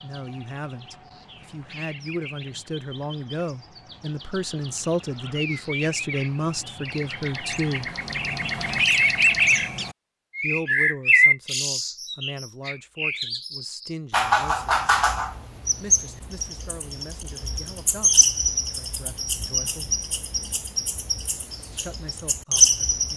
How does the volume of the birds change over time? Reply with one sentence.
The loudness of the birds goes up.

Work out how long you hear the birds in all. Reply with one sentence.
You can hear the birds for 23 seconds altogether.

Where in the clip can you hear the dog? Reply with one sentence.
You can't hear the dog here.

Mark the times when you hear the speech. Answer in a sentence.
The speech can be heard from 0.0 to 8.0 s, from 10.4 to 14.9 s, from 15.8 to 19.9 s and from 21.7 to 23.1 s.